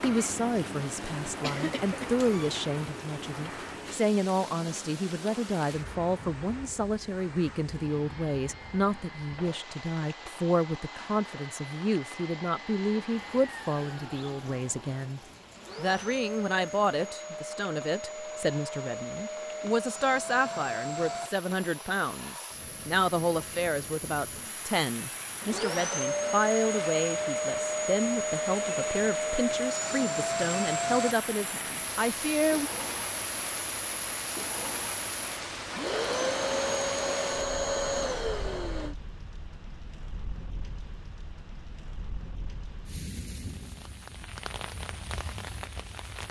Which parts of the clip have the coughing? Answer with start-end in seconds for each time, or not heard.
1.4-2.5.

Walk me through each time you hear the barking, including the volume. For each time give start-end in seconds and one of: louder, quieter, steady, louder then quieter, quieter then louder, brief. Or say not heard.
not heard.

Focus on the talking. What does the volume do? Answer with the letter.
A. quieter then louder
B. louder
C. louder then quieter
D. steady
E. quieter
D.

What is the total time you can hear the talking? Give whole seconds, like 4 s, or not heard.
33 s.